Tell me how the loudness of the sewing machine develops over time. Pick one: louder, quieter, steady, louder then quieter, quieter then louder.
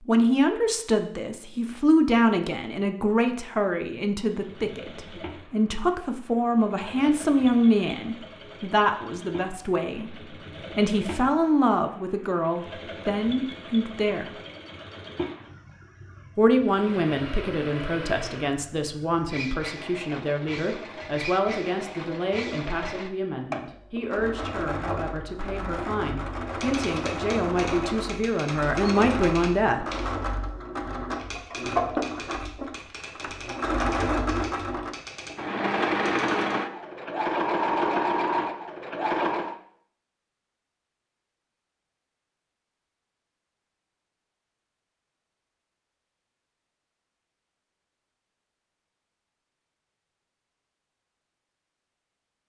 louder.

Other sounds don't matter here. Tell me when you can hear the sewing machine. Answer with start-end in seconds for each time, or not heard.
4.2-39.5.